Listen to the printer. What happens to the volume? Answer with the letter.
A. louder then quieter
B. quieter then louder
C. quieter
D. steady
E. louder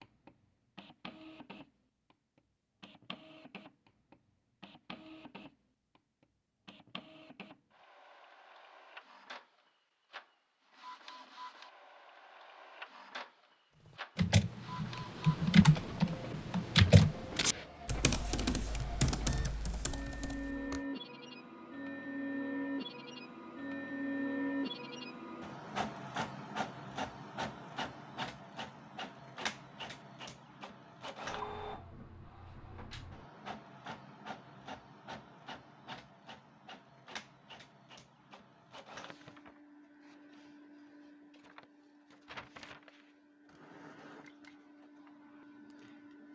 A.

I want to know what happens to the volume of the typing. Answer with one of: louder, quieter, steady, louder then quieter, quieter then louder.
quieter.